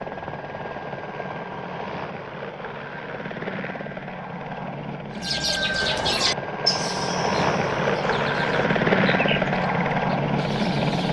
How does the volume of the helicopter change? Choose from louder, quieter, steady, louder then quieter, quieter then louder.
louder.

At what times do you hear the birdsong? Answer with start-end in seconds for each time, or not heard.
5.2-11.0.